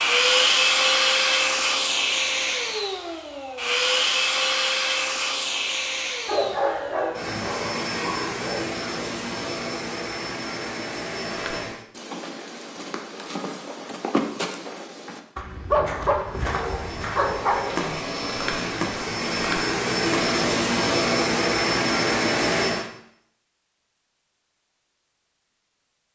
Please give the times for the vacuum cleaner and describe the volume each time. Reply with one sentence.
You can hear the vacuum cleaner from 0.0 to 11.8 s, getting quieter; and from 16.2 to 22.9 s, getting louder.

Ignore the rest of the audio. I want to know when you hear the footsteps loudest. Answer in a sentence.
The loudest moment of the footsteps is at 14 seconds.